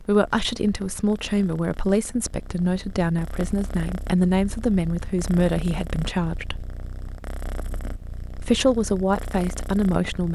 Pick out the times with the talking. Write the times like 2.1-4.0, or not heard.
0.0-6.7, 8.4-10.3.